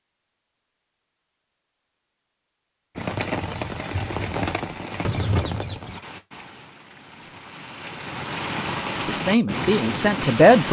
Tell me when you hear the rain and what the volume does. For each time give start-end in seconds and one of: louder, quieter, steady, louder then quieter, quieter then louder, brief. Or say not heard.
3.0-10.6 quieter then louder.